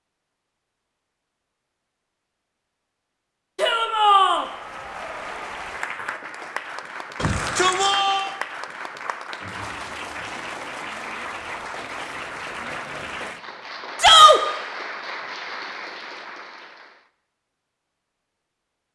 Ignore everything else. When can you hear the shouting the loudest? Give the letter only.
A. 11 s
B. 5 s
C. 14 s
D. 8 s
C.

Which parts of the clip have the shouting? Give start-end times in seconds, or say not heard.
3.5-4.5, 7.2-8.3, 14.0-14.4.